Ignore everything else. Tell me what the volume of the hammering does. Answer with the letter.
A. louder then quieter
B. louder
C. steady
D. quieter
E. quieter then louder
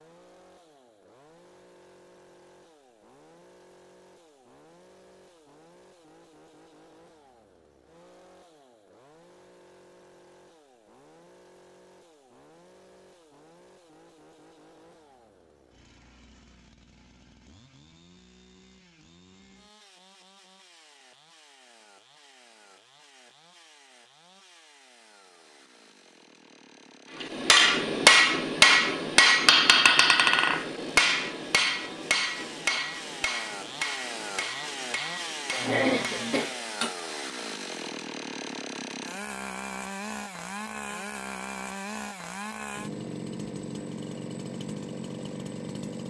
D.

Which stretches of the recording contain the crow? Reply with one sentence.
The crow can't be heard in this clip.